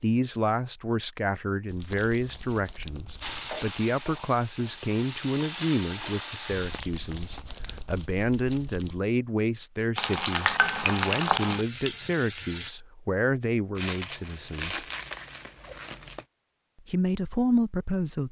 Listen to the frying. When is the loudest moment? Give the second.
11 s.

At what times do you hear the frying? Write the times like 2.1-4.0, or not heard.
3.2-6.8, 9.9-12.8.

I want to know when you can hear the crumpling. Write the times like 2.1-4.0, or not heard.
1.6-3.5, 6.5-9.0, 13.8-16.2.